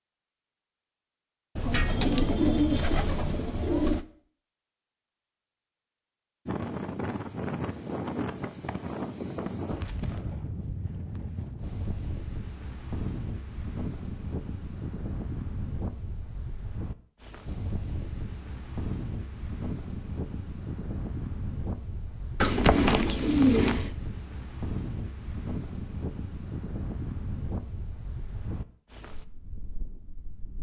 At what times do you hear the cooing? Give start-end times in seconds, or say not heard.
1.6-4.0, 22.4-23.9.